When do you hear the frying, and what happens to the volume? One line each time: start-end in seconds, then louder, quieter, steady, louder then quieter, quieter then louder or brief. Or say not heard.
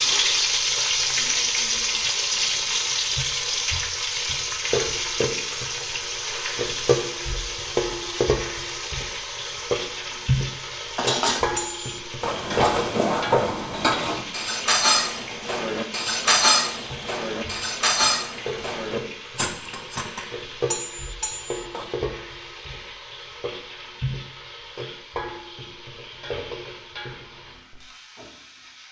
0.0-28.8 quieter.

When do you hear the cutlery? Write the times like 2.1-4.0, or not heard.
10.9-21.9.